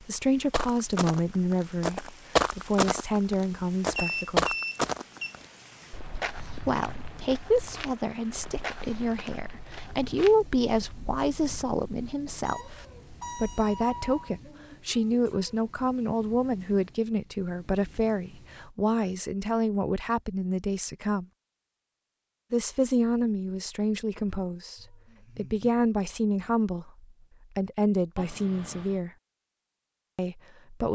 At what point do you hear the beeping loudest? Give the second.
4 s.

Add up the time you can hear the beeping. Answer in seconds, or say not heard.
4 s.